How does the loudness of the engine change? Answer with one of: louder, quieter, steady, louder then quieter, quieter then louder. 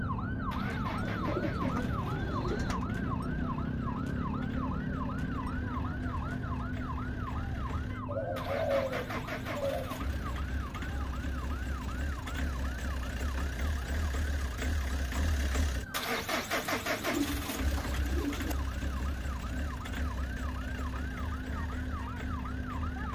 louder then quieter.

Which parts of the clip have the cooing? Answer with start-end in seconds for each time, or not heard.
1.0-2.9, 8.1-10.0, 16.6-18.6.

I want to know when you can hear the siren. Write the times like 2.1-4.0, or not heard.
0.0-23.0.